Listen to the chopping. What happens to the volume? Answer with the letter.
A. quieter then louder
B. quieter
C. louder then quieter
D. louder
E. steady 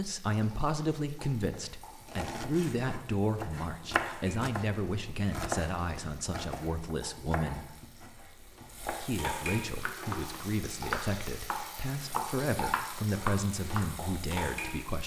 A.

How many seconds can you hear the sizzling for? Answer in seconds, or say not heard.
15 s.